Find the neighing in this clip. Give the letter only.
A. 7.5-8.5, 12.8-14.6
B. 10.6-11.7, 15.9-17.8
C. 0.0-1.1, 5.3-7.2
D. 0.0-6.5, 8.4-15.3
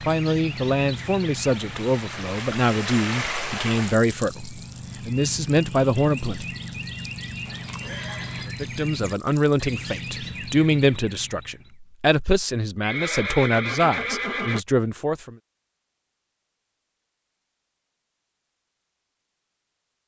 A.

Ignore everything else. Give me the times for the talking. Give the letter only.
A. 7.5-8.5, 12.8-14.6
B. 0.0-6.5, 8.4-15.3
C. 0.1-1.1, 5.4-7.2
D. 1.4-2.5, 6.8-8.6
B.